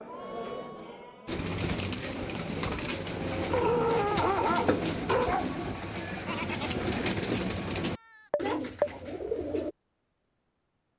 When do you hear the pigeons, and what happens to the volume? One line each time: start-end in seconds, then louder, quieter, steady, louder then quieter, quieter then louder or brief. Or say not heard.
1.2-9.8 steady.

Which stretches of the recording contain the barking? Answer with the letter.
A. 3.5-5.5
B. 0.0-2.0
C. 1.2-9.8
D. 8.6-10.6
A.